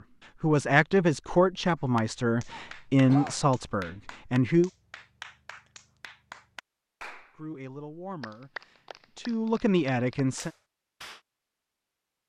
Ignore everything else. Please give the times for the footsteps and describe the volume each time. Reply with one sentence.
The footsteps can't be heard in this clip.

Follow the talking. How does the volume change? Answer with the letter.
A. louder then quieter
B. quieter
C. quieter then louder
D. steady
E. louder
C.